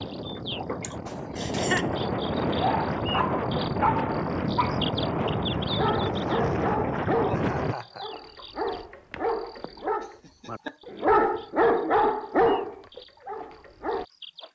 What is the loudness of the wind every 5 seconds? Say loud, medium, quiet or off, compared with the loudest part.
loud, loud, off.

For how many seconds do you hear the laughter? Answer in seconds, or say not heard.
3 s.